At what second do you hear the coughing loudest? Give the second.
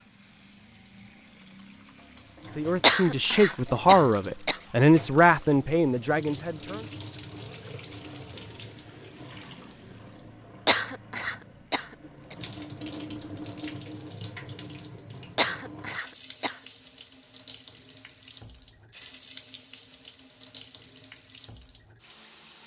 3 s.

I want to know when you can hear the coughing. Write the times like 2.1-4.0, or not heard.
2.8-4.6, 10.7-12.3, 15.3-16.6.